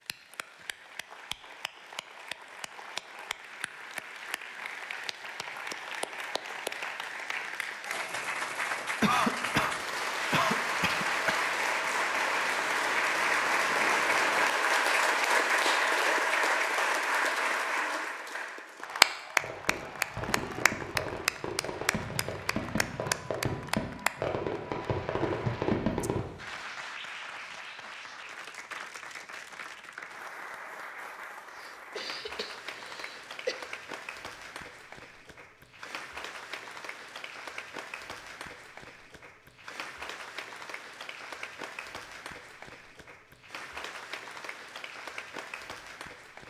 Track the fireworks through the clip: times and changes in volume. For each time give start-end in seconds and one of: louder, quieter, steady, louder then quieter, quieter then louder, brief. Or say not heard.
19.4-26.2 louder.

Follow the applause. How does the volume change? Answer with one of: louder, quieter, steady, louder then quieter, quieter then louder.
louder then quieter.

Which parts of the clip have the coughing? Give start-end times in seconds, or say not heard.
9.0-11.4, 31.6-33.5.